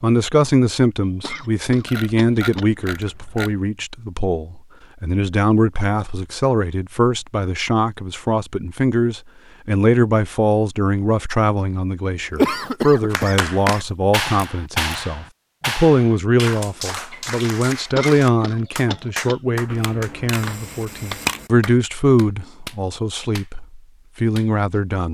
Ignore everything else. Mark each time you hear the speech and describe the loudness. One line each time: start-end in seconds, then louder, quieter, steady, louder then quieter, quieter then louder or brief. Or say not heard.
0.0-25.0 steady.